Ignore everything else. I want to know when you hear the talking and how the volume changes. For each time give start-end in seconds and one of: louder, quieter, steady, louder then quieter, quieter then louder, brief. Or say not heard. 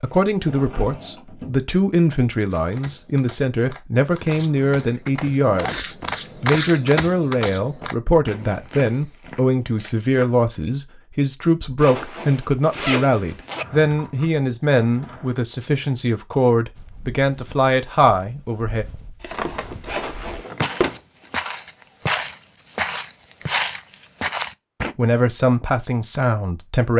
0.0-18.9 steady
24.9-26.9 brief.